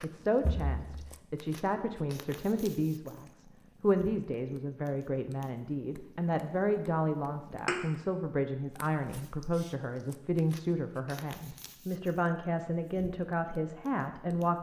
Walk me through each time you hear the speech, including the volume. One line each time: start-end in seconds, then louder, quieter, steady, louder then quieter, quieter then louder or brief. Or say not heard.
0.0-14.5 steady.